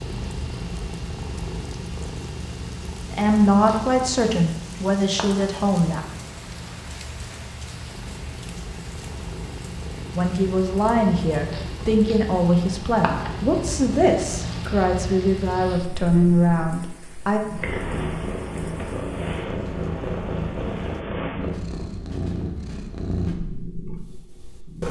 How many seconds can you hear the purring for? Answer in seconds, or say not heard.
25 s.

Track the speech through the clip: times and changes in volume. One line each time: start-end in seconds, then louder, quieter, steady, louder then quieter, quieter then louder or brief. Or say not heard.
3.1-6.0 brief
10.2-17.4 steady.